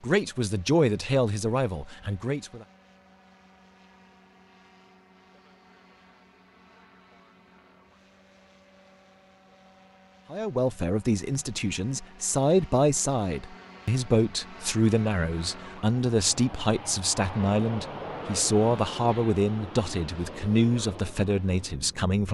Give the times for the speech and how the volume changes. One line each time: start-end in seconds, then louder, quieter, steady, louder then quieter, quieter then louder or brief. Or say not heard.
0.0-2.6 brief
10.3-22.2 steady.